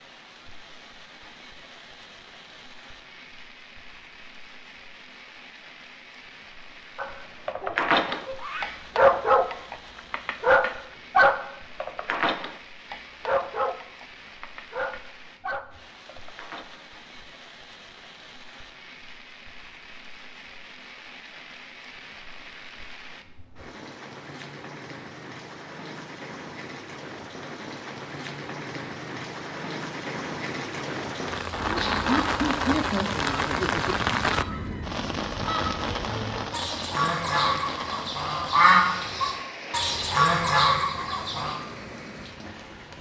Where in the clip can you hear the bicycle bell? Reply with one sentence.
You can't hear the bicycle bell here.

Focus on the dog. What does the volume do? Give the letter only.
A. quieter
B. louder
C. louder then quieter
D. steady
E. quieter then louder
A.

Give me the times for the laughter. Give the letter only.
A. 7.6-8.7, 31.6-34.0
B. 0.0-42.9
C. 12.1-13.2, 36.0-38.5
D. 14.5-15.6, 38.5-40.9
A.